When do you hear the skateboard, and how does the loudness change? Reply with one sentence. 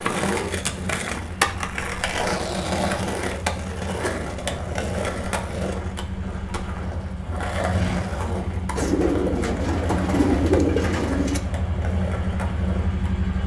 You can hear the skateboard from 0.0 to 13.4 s, getting quieter.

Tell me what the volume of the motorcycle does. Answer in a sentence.
The loudness of the motorcycle goes up.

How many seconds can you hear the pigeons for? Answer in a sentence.
The pigeons can be heard for 3 seconds in total.